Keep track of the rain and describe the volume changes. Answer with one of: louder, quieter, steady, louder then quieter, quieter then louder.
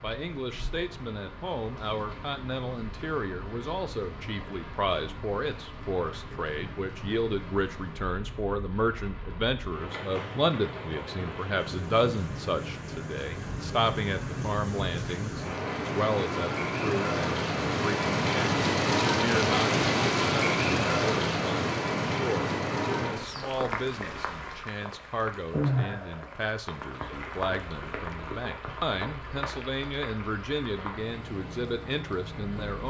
louder then quieter.